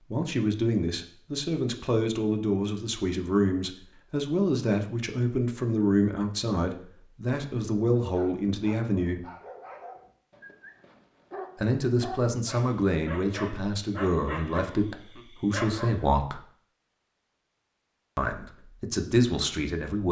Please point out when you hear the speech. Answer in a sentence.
You can hear the speech from 0.1 to 9.2 s, from 11.6 to 16.4 s and from 18.1 to 20.0 s.